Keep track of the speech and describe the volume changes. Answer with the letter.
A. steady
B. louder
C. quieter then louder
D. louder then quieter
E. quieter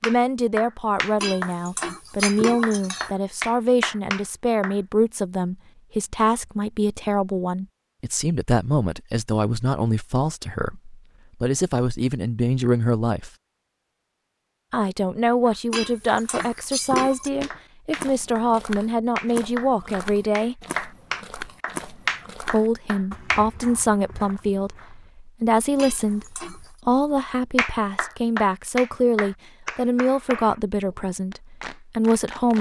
A.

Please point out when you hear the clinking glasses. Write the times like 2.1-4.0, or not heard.
1.2-3.1, 15.7-17.3, 25.8-26.7.